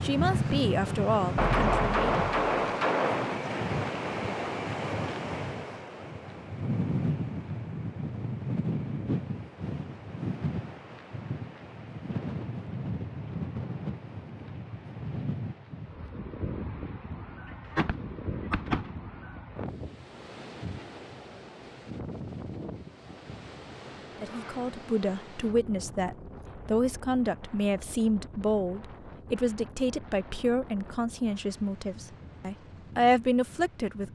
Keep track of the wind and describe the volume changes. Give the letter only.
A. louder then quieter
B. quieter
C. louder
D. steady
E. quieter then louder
B.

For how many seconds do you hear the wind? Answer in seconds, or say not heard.
34 s.